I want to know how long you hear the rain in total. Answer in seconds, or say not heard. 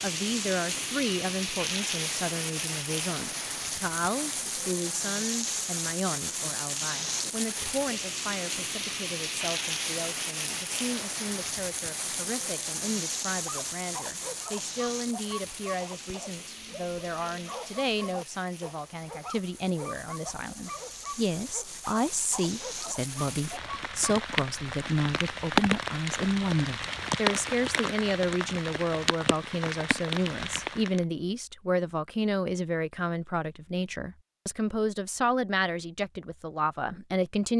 31 s.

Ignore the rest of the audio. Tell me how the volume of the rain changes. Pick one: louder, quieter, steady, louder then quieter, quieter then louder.
quieter then louder.